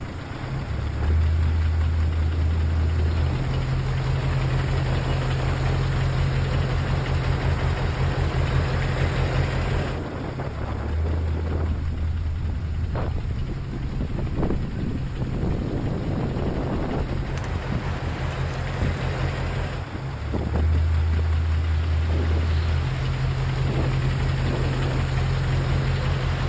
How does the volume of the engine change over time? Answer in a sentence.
The volume of the engine goes down, then up.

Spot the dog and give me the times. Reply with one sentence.
You can't hear the dog here.